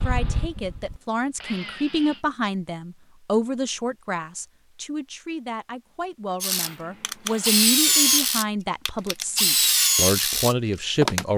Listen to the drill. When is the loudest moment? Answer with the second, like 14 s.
8 s.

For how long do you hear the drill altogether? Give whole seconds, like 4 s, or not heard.
7 s.